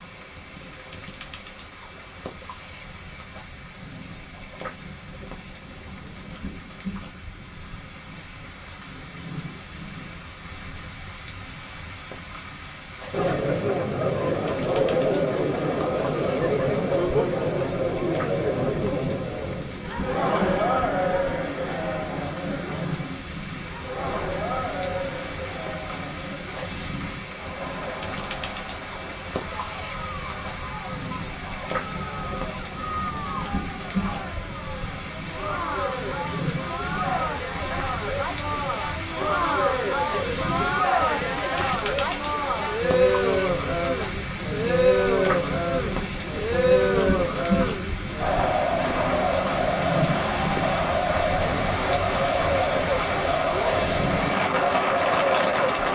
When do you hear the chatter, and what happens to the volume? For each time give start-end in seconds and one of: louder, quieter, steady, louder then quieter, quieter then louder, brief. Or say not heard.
13.1-55.9 quieter then louder.